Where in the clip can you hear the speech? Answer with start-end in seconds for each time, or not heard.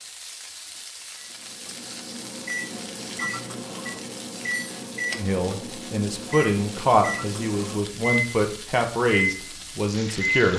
5.2-10.5.